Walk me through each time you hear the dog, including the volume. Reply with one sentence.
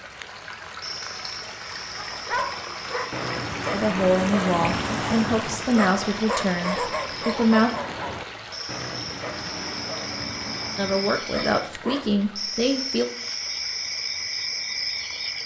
You can hear the dog from 1.9 to 12.2 s, getting quieter.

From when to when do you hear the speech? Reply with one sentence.
You can hear the speech from 3.7 to 7.7 s and from 10.8 to 13.1 s.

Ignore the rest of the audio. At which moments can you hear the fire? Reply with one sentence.
The fire can't be heard in this clip.